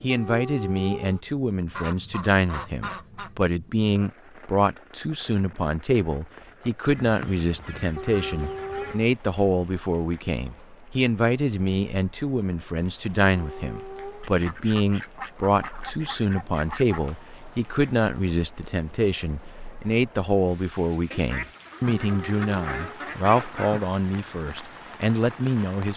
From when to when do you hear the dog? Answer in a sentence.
The dog can be heard from 0.1 to 1.2 s, from 8.0 to 9.1 s, from 13.2 to 14.3 s and from 21.9 to 23.0 s.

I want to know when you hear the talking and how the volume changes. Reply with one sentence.
You can hear the talking from 0.0 to 25.9 s, at a steady volume.